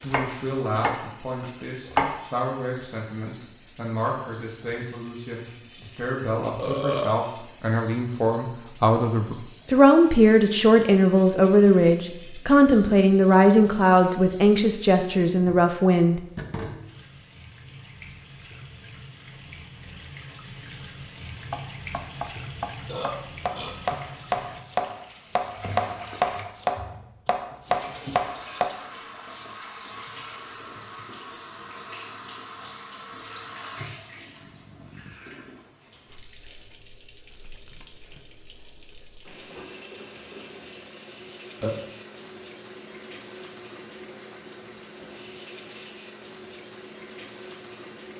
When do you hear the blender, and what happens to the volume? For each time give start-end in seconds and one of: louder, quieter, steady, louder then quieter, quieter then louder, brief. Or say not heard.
not heard.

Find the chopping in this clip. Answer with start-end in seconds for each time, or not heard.
0.0-2.2, 21.5-28.7.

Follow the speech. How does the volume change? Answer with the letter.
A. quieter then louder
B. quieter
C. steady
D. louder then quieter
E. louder
E.